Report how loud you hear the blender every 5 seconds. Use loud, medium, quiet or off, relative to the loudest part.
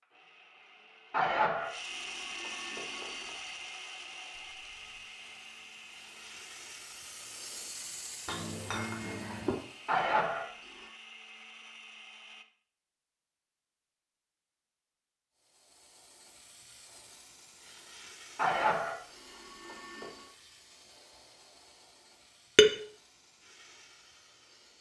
loud, medium, medium, off, off.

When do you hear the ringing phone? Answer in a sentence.
The ringing phone can be heard from 1.1 to 3.5 s, from 9.8 to 10.8 s and from 18.4 to 20.2 s.